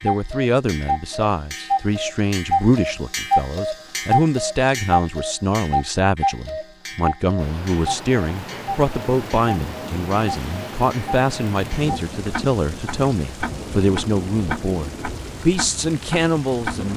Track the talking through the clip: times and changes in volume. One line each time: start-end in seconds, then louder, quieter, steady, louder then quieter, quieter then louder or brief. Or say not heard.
0.0-16.9 steady.